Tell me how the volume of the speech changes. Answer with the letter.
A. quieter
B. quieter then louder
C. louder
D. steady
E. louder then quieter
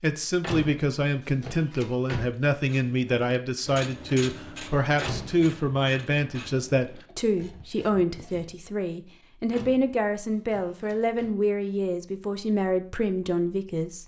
D.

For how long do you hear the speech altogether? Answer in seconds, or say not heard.
14 s.